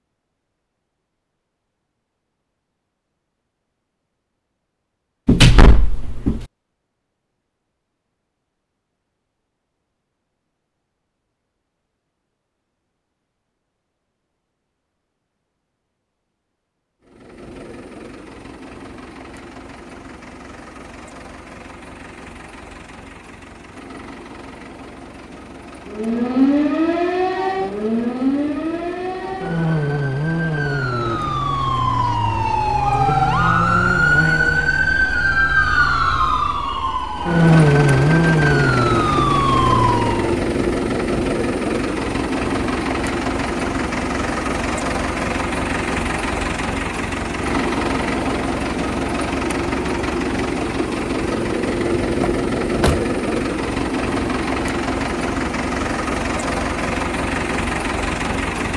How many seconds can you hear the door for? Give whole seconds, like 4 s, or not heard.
2 s.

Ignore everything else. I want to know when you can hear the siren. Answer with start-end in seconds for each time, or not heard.
25.9-40.4.